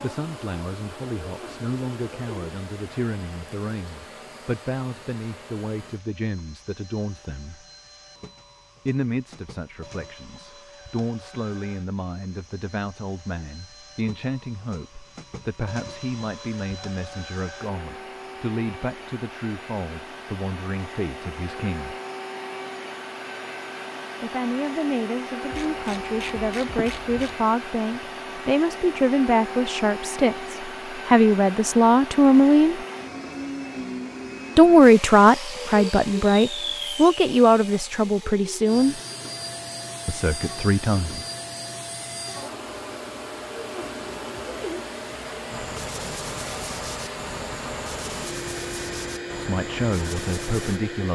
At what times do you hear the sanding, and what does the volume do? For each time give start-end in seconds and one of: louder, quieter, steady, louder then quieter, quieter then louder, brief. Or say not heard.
45.5-50.8 steady.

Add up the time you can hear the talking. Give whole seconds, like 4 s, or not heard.
37 s.